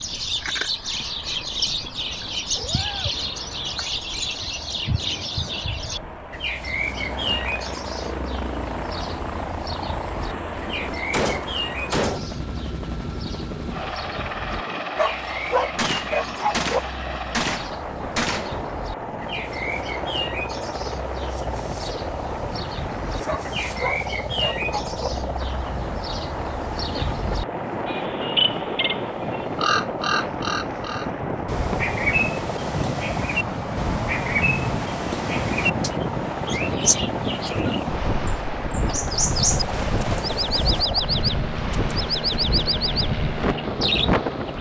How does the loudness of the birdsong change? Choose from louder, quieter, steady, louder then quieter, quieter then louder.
quieter then louder.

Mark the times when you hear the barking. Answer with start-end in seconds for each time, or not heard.
14.8-16.8, 23.1-25.1.